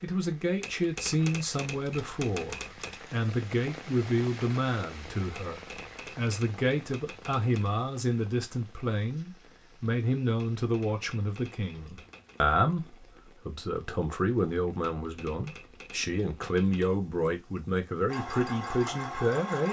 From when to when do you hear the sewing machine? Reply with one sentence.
You can hear the sewing machine from 18.1 to 19.6 s.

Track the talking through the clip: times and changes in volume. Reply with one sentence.
You can hear the talking from 0.0 to 19.6 s, at a steady volume.